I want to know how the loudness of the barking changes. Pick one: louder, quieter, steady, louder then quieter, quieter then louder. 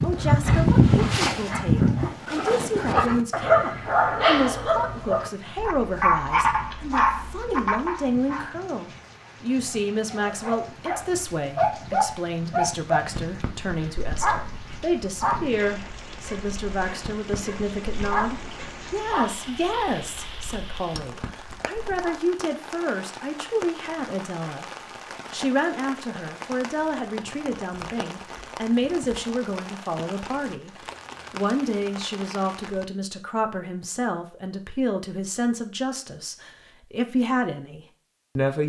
quieter.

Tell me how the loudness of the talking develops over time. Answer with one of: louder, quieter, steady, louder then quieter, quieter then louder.
steady.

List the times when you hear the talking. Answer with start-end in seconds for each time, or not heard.
0.0-24.6, 25.3-30.7, 31.3-38.6.